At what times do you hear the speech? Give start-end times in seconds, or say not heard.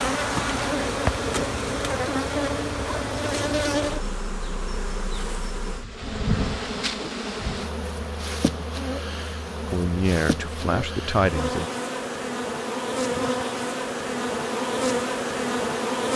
9.7-11.7.